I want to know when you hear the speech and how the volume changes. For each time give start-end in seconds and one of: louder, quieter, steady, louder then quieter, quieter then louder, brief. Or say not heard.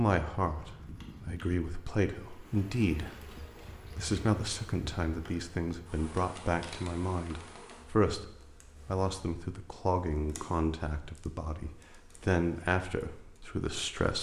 0.0-14.1 steady.